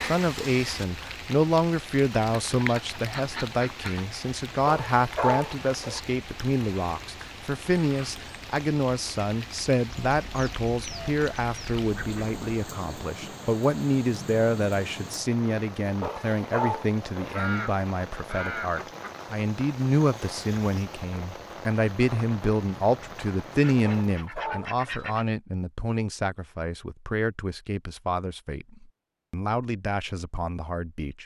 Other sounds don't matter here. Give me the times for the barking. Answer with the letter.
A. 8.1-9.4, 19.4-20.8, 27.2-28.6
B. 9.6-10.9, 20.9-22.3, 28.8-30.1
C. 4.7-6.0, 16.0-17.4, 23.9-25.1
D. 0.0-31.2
C.